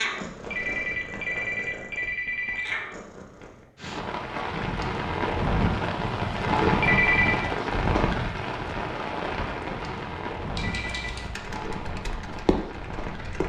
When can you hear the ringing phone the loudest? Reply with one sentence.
The volume of the ringing phone peaks at 7 seconds.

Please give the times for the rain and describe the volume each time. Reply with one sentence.
You can hear the rain from 3.8 to 13.4 s, getting quieter.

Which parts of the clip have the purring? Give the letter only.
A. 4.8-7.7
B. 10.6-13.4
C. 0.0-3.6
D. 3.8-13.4
C.